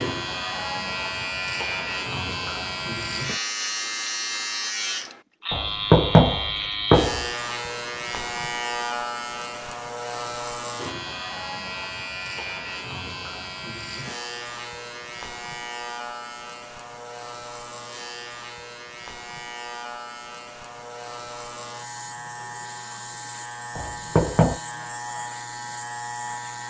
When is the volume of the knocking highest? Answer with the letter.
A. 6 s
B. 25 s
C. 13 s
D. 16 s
A.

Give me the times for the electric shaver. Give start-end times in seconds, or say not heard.
0.0-26.6.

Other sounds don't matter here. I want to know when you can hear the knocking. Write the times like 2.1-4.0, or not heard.
5.5-7.2, 23.8-24.6.